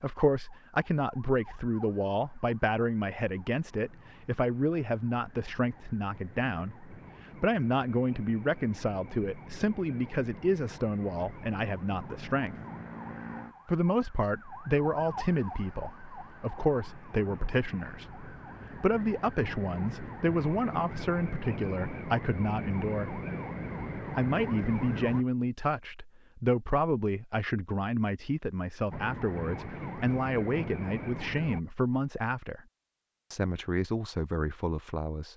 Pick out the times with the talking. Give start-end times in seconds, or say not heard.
0.0-12.6, 13.7-23.2, 24.1-32.6, 33.3-35.3.